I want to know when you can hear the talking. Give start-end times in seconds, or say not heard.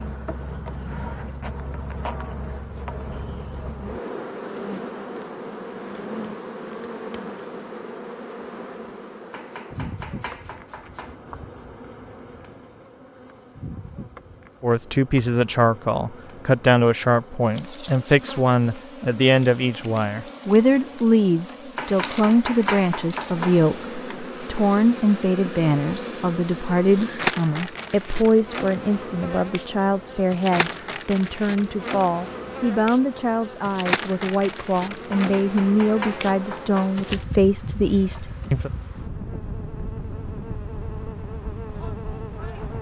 14.6-38.7.